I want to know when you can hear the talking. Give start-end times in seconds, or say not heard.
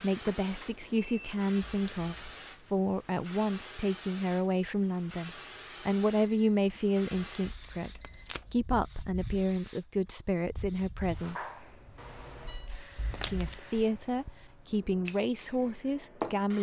0.0-11.3, 13.2-16.5.